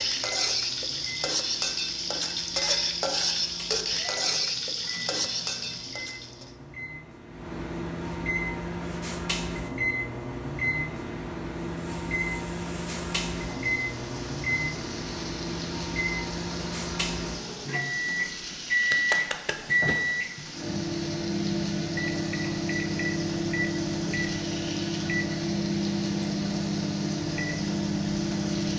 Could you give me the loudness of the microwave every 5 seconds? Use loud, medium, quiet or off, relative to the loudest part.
quiet, medium, loud, loud, loud, loud.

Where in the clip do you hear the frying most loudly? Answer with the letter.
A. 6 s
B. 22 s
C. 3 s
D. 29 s
C.